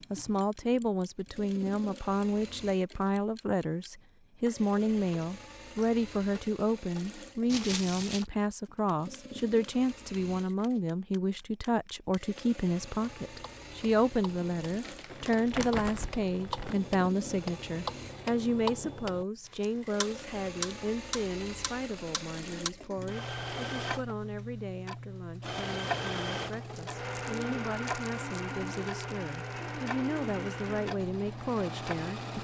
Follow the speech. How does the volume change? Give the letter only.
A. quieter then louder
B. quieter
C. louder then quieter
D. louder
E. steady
B.